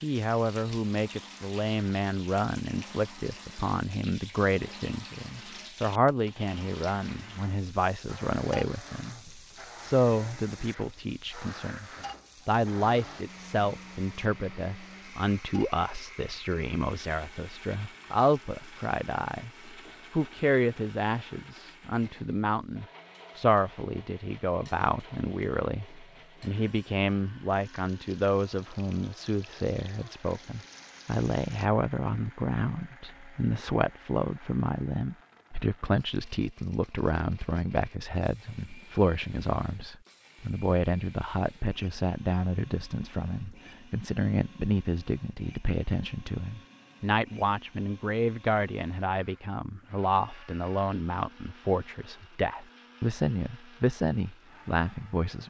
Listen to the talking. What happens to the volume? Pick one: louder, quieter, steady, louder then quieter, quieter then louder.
steady.